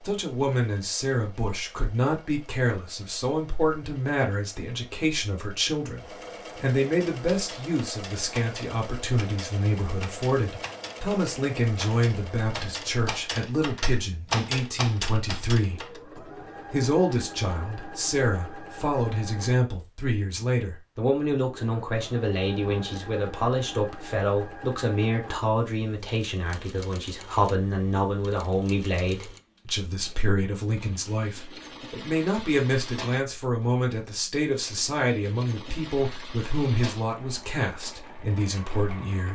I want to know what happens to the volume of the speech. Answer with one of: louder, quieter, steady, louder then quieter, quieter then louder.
steady.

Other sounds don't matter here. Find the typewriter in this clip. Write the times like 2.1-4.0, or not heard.
7.0-16.0.